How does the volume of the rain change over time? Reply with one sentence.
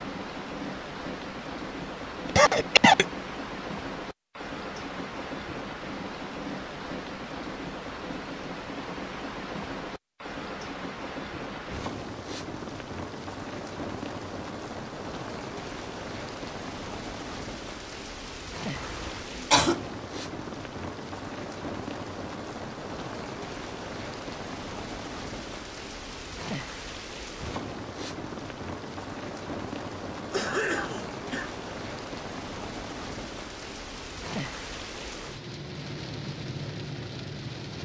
The volume of the rain stays about the same.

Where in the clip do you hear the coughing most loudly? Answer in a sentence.
The loudest moment of the coughing is at 3 seconds.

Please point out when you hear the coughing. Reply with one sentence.
You can hear the coughing from 2.4 to 3.0 s, from 18.8 to 19.8 s and from 30.3 to 31.5 s.